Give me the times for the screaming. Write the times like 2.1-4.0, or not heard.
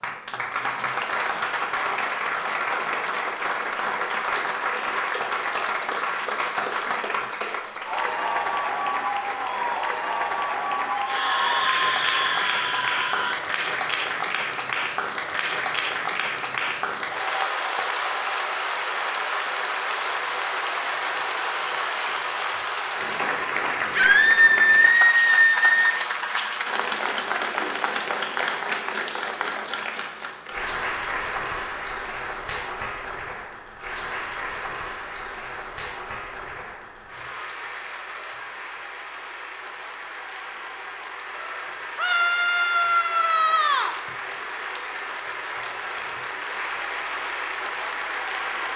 10.9-13.4, 23.9-25.7, 42.0-44.0.